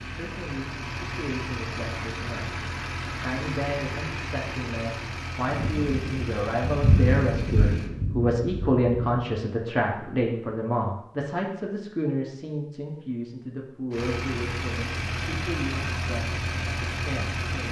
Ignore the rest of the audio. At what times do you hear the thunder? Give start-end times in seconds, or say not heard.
5.5-9.2.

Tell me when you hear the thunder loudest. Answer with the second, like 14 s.
7 s.